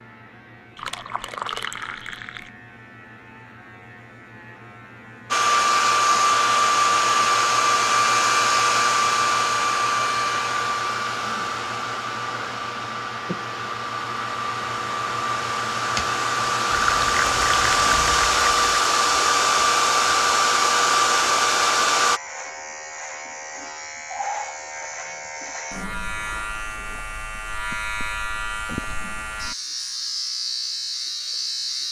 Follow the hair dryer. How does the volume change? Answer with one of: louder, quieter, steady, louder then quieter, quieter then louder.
quieter then louder.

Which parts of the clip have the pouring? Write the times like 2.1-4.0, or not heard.
0.8-2.5, 16.7-18.7.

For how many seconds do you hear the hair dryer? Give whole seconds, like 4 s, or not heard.
17 s.